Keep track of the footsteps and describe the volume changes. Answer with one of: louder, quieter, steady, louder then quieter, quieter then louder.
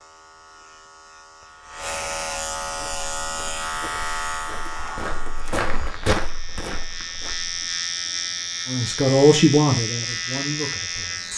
louder then quieter.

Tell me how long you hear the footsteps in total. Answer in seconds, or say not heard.
5 s.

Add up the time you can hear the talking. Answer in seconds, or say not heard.
3 s.